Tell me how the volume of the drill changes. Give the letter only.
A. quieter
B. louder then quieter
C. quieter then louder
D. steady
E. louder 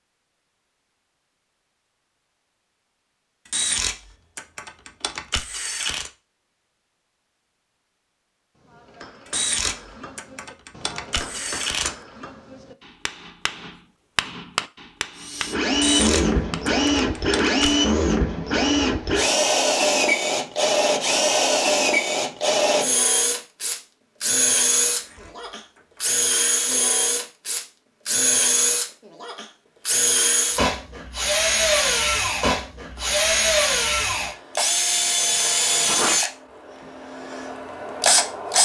D.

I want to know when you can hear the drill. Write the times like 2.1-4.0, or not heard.
15.2-38.5.